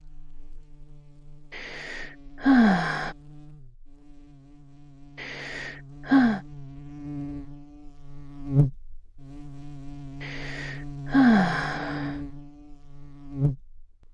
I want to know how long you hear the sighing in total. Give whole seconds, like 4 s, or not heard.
5 s.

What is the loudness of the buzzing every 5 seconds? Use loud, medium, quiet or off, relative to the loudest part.
quiet, loud, loud.